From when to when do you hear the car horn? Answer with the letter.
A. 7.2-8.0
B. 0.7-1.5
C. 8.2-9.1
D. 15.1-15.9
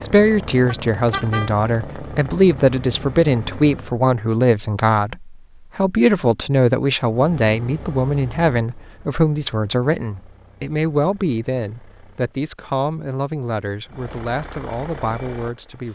B.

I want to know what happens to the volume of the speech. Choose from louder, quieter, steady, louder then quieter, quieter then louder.
quieter.